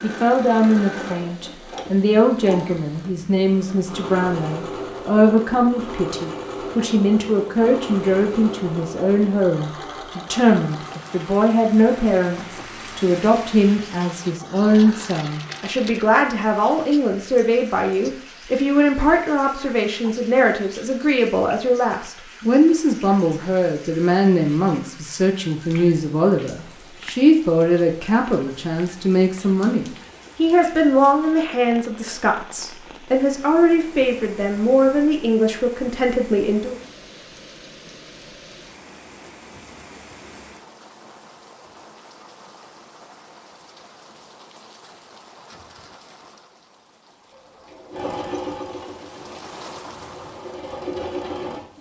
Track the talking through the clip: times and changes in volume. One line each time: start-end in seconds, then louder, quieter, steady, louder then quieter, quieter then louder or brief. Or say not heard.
0.0-36.8 steady.